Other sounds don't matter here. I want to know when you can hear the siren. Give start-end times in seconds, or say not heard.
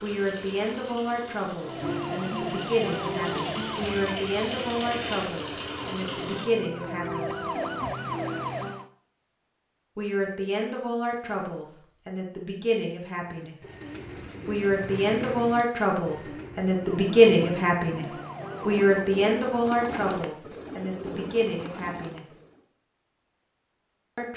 1.6-8.9, 16.7-19.1.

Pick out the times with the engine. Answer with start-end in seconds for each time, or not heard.
0.0-6.5.